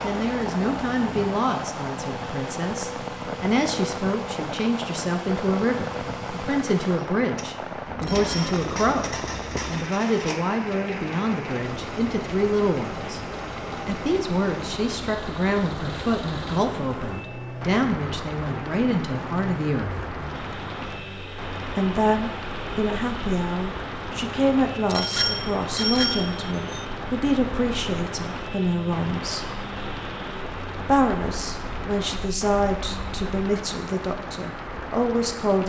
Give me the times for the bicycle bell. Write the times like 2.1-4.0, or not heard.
8.0-8.6, 24.9-26.8.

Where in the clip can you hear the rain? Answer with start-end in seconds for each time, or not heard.
0.0-35.6.